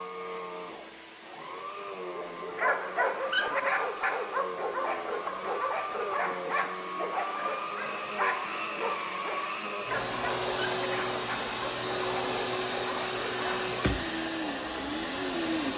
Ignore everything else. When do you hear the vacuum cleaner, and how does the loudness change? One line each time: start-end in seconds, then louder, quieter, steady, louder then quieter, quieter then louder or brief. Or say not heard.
0.0-15.7 louder.